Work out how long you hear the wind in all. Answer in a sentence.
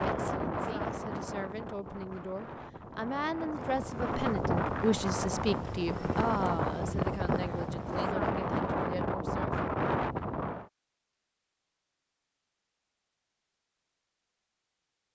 The wind can be heard for 11 seconds in total.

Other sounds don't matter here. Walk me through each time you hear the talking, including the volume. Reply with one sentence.
You can hear the talking from 0.0 to 9.6 s, getting louder then quieter.